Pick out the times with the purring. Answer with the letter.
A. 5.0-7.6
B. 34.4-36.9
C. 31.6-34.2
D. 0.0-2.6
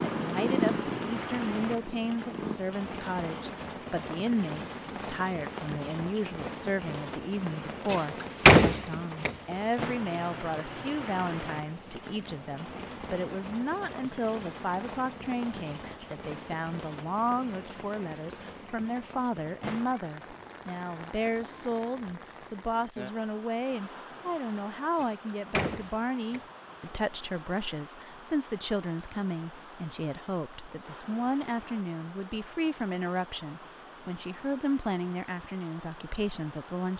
D.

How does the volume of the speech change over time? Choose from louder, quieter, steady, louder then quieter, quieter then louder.
steady.